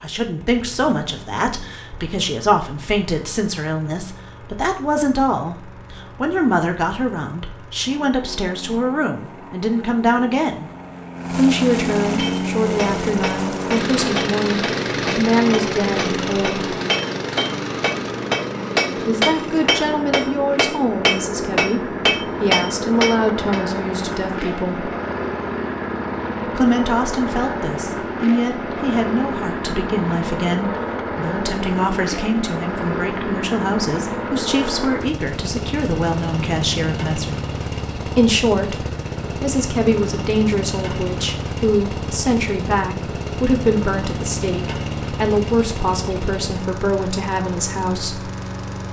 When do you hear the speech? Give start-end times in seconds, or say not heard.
0.0-10.7, 11.3-16.8, 19.1-24.9, 26.6-37.4, 38.0-48.3.